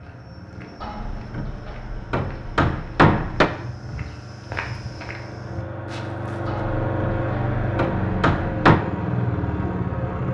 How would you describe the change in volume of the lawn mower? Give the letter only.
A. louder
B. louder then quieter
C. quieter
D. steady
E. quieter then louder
A.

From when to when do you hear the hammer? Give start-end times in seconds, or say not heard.
0.8-3.5, 6.5-8.8.